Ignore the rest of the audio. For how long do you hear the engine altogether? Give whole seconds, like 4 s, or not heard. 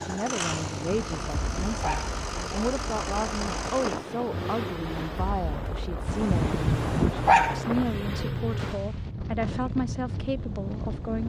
9 s.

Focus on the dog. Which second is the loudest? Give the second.
7 s.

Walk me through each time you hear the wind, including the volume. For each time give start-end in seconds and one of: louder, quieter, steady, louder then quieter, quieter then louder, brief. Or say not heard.
0.0-11.2 steady.